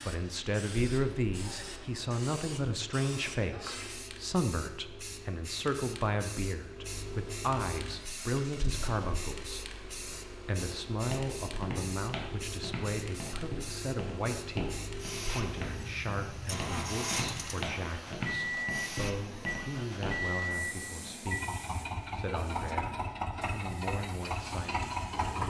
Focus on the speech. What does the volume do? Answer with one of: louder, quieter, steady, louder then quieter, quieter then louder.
quieter.